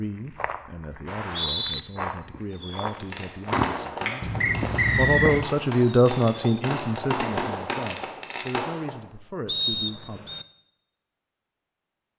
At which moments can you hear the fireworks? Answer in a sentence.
The fireworks can be heard from 2.5 to 9.0 s.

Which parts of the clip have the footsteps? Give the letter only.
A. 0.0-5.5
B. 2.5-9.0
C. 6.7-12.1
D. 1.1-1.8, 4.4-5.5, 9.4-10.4
A.